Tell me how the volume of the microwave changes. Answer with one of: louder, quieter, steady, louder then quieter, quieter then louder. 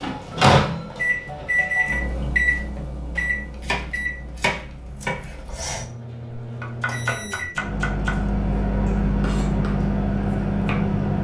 quieter then louder.